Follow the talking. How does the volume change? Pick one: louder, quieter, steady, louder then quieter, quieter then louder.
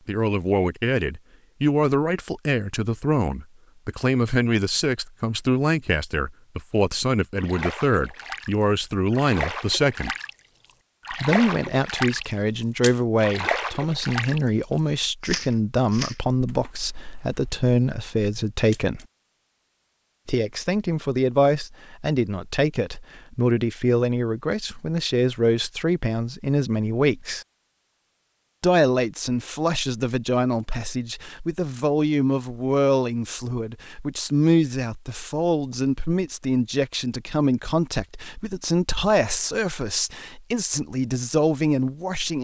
steady.